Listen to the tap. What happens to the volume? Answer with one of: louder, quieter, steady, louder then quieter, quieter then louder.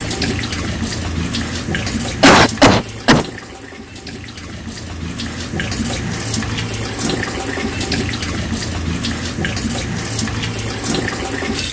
quieter then louder.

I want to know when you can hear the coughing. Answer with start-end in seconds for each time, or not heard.
1.9-3.2.